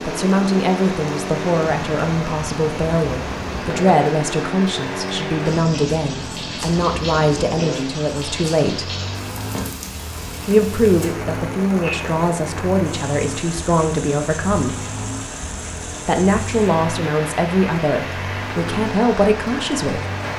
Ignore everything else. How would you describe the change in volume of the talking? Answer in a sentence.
The volume of the talking stays about the same.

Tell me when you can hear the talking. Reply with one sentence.
You can hear the talking from 0.1 to 8.9 s, from 10.4 to 14.8 s and from 16.1 to 20.0 s.